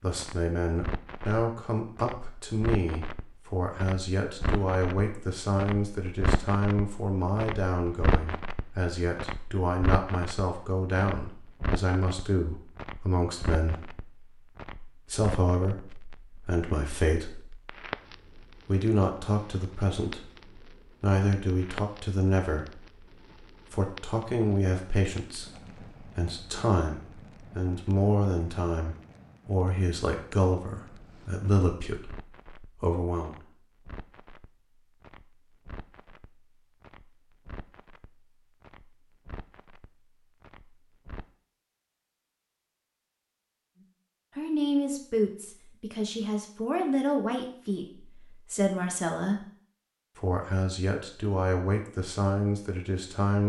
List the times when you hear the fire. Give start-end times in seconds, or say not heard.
0.0-41.3.